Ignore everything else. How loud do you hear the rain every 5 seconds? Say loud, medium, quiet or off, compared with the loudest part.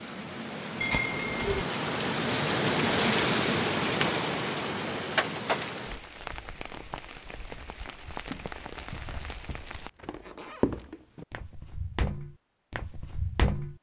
loud, medium, off.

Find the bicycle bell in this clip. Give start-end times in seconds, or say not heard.
0.8-1.6.